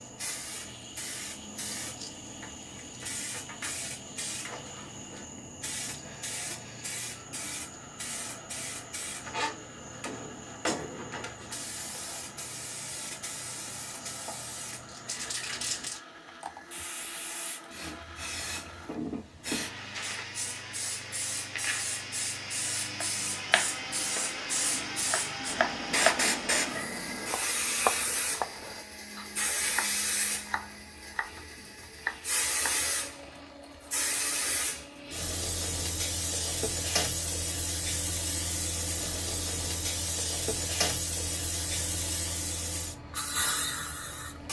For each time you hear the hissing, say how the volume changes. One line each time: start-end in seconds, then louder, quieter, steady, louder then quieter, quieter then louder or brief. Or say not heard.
0.0-44.4 louder.